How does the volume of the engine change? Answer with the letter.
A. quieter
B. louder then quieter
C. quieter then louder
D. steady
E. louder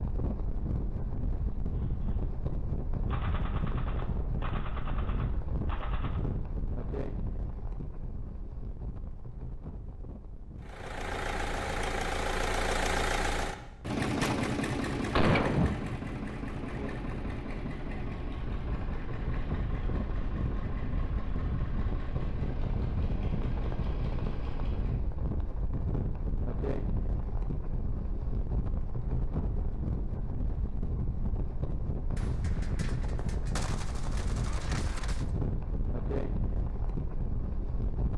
A.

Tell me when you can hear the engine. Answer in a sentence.
You can hear the engine from 10.6 to 25.1 s.